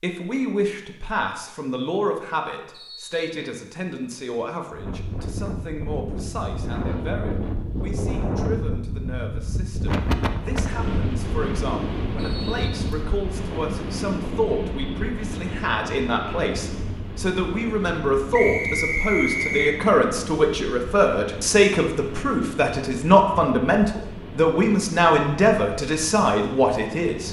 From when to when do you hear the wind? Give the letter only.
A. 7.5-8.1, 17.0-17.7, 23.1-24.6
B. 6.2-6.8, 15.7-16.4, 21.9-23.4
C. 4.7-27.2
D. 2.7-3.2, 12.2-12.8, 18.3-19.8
C.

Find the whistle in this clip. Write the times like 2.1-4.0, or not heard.
2.7-3.2, 12.2-12.8, 18.3-19.8.